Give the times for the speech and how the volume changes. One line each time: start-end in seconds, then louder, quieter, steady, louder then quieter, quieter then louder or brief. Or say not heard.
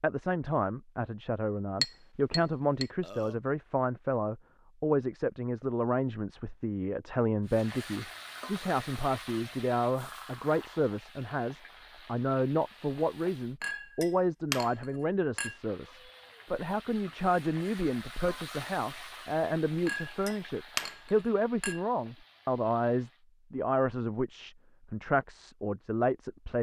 0.0-26.5 steady.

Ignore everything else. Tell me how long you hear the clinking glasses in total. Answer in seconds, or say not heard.
5 s.